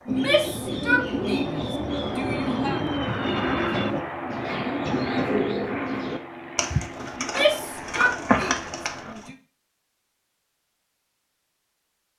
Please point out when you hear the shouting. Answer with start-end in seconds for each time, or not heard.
0.1-2.8, 7.2-9.3.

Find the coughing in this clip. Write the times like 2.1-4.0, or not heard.
4.8-5.4.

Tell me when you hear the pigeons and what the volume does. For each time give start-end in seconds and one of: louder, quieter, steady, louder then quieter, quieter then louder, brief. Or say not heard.
0.1-9.3 steady.